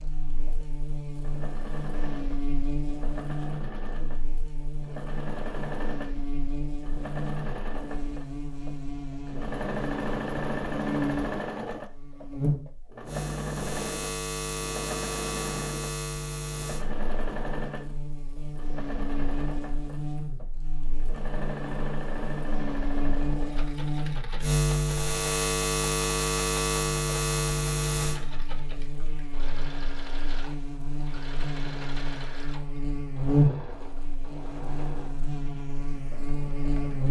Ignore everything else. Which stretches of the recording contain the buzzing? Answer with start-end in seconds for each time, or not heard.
0.0-37.0.